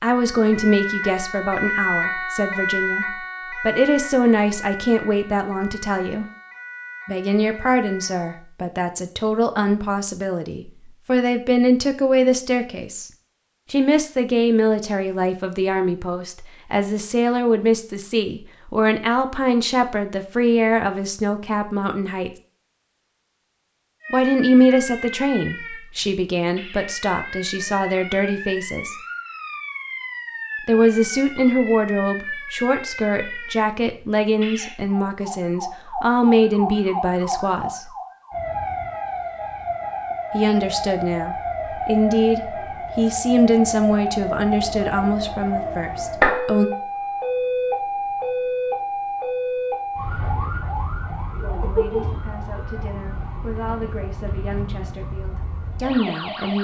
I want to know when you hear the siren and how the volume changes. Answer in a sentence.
The siren can be heard from 0.1 to 8.4 s, getting quieter; and from 24.0 to 56.5 s, getting louder then quieter.